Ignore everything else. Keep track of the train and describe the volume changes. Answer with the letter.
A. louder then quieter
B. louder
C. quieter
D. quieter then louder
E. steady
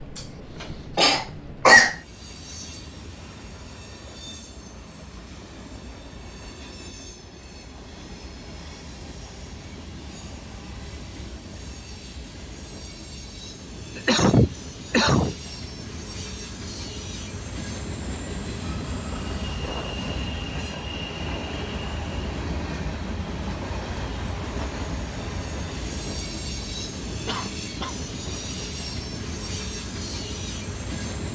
B.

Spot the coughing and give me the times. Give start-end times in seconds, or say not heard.
0.1-1.9, 13.9-15.3, 27.2-27.9.